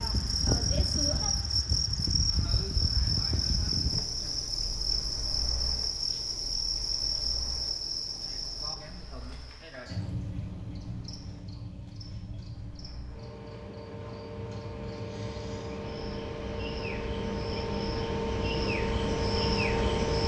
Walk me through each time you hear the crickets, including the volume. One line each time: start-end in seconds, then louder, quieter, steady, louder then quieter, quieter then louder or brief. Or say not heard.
0.0-20.2 quieter then louder.